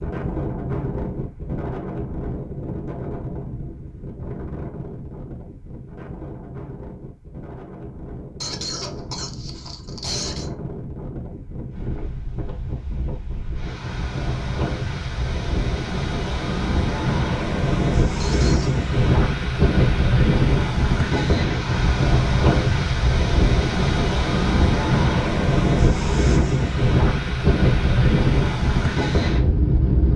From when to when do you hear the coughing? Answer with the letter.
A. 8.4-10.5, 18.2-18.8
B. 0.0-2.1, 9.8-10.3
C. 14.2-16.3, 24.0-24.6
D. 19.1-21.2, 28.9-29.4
A.